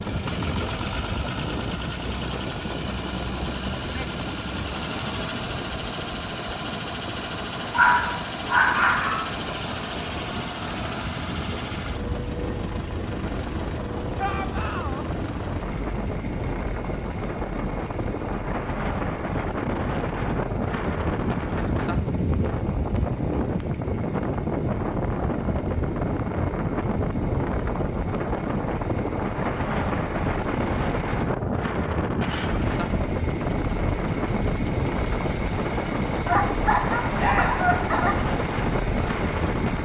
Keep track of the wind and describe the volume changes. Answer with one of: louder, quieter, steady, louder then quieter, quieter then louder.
louder.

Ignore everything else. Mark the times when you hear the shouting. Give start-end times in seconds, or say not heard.
14.2-15.1, 37.1-37.6.